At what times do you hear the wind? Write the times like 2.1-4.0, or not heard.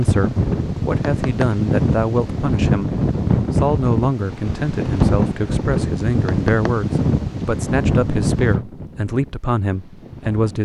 0.0-10.5.